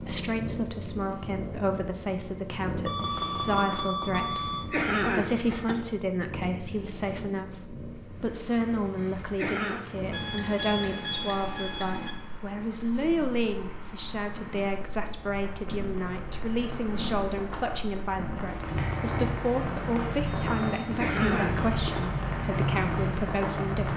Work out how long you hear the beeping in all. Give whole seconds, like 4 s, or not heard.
5 s.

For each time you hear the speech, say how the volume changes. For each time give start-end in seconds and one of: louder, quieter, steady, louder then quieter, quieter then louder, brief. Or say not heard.
0.0-23.9 steady.